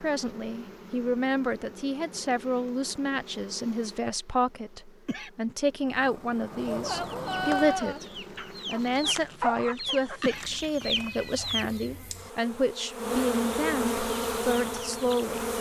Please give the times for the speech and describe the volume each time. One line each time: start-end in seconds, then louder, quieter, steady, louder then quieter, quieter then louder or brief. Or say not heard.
0.0-8.1 steady
8.7-15.5 steady.